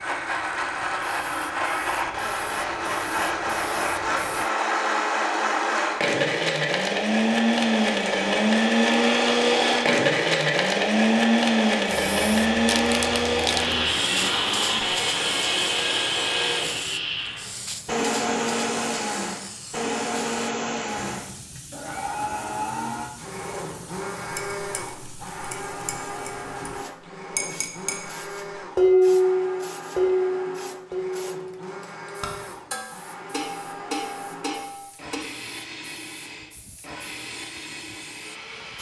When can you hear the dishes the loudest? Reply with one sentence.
The volume of the dishes peaks at 29 seconds.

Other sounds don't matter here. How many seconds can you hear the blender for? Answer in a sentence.
The blender can be heard for 39 seconds in total.